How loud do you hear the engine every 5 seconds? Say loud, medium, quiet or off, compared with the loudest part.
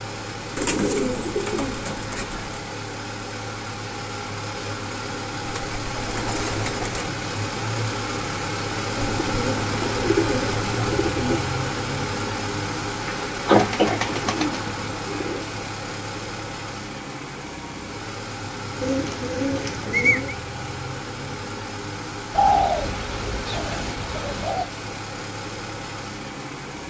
medium, loud, loud, medium, medium, medium.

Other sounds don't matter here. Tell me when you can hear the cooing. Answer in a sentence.
You can hear the cooing from 0.6 to 2.6 s, from 5.4 to 7.1 s, from 8.9 to 11.4 s, from 13.6 to 15.5 s, from 18.8 to 20.4 s and from 22.3 to 24.7 s.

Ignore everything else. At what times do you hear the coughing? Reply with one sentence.
The coughing can be heard from 13.1 to 14.3 s.